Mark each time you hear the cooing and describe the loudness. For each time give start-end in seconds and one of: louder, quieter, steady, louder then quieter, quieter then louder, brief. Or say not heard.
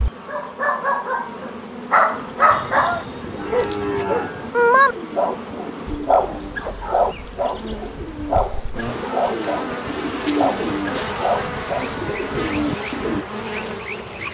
2.1-13.2 louder.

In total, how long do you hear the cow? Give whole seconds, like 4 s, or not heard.
2 s.